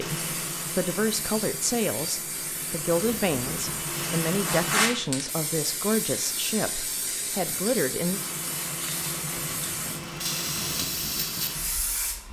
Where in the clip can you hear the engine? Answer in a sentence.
The engine can be heard from 0.0 to 4.9 s and from 8.1 to 12.2 s.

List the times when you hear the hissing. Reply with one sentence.
The hissing can be heard from 0.1 to 12.2 s.